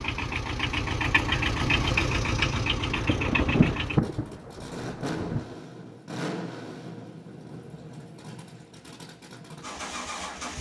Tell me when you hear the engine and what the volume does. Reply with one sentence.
The engine can be heard from 0.0 to 10.5 s, getting quieter.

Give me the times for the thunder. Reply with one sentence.
You can hear the thunder from 3.0 to 5.5 s.